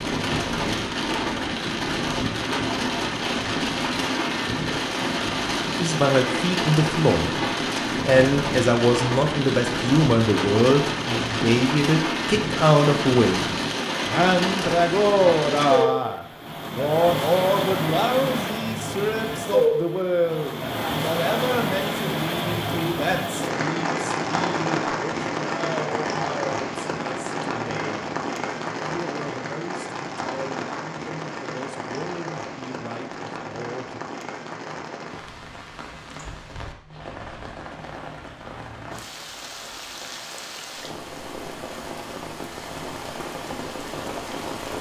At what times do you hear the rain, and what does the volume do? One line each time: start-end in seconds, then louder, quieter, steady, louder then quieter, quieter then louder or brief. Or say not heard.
0.0-44.7 quieter.